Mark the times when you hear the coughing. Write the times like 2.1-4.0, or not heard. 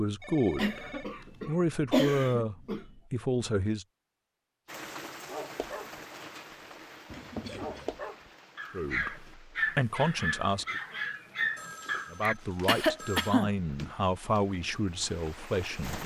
0.6-2.9, 7.1-8.0, 12.7-13.5.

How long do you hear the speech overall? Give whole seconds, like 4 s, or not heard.
10 s.